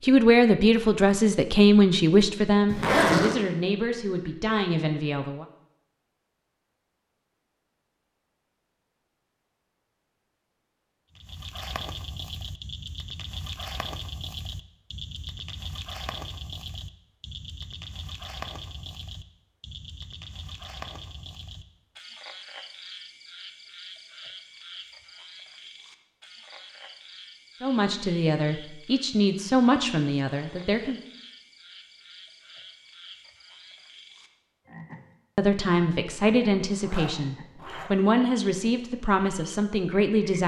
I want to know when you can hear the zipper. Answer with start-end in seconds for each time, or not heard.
2.7-3.4, 36.8-37.9.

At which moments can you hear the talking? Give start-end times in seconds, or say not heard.
0.0-5.5, 27.6-31.0, 35.4-40.4.